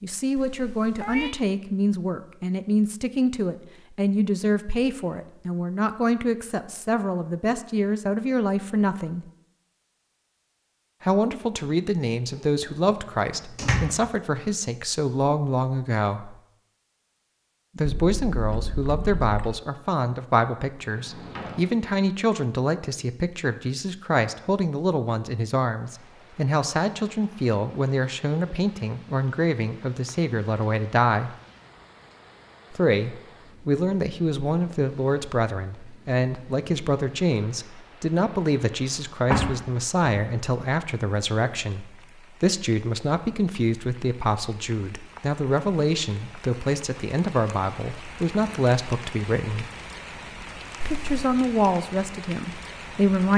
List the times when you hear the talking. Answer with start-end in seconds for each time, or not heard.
0.0-9.2, 11.0-16.4, 17.8-31.3, 32.7-49.7, 50.9-53.3.